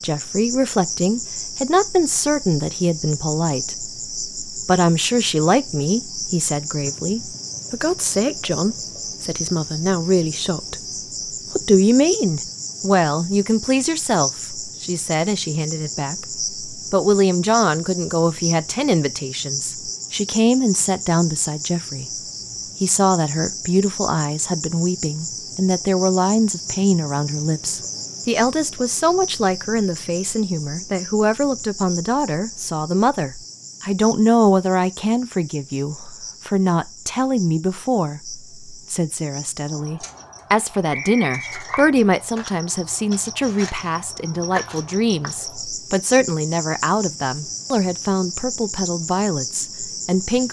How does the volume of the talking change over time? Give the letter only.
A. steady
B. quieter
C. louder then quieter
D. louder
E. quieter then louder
A.